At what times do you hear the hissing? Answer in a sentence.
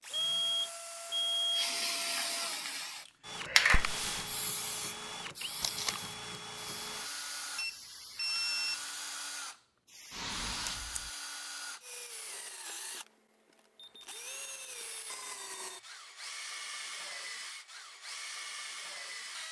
The hissing can be heard from 1.5 to 10.8 s.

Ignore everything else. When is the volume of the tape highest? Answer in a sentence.
The loudest moment of the tape is at 6 seconds.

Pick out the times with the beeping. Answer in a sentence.
The beeping can be heard from 0.1 to 1.7 s, from 7.5 to 8.9 s and from 13.8 to 15.9 s.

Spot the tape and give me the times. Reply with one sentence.
You can hear the tape from 5.6 to 6.0 s and from 10.4 to 11.1 s.